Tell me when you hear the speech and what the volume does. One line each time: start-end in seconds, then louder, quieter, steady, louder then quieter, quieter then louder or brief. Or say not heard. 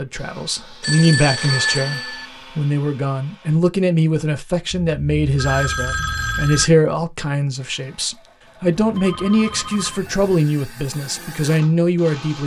0.0-12.4 steady.